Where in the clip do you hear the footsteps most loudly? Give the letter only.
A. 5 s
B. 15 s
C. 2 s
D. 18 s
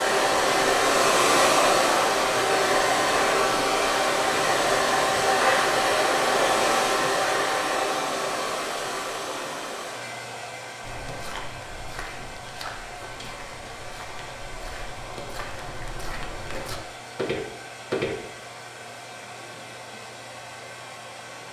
D.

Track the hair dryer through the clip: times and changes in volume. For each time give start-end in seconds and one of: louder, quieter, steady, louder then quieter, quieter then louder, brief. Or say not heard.
0.0-21.4 quieter.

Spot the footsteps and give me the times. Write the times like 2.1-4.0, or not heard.
10.8-18.1.